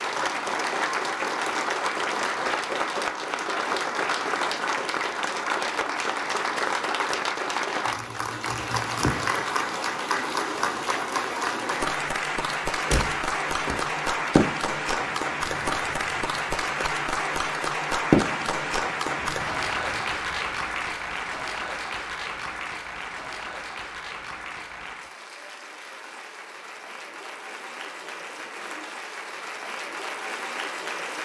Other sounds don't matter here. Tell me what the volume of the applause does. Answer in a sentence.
The loudness of the applause goes down.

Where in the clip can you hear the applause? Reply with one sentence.
The applause can be heard from 0.0 to 31.2 s.